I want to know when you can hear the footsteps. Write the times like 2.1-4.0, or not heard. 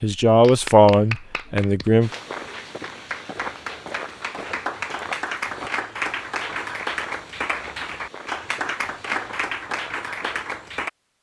2.0-10.4.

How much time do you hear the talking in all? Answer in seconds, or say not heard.
2 s.